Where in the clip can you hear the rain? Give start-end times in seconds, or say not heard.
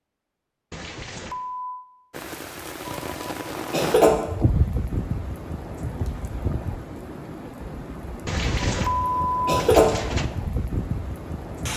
2.1-11.7.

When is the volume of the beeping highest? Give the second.
9 s.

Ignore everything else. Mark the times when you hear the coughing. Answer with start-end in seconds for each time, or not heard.
2.9-4.1, 8.6-9.8.